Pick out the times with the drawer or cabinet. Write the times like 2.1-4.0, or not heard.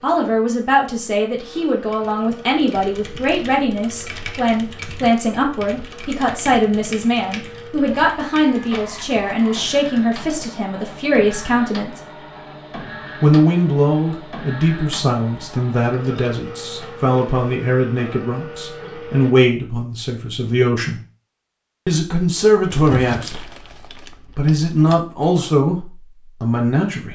22.9-23.3.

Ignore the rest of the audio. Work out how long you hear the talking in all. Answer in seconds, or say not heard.
24 s.